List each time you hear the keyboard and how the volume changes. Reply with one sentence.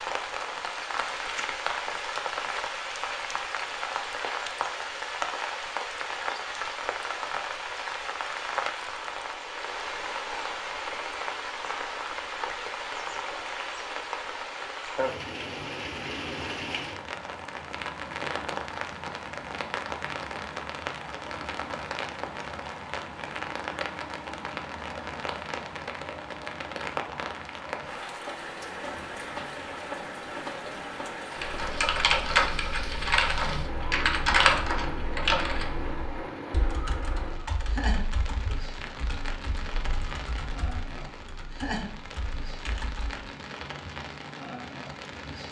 You can hear the keyboard from 31.4 to 43.2 s, getting quieter.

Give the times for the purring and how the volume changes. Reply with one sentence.
The purring can't be heard in this clip.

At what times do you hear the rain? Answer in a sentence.
You can hear the rain from 0.0 to 45.4 s.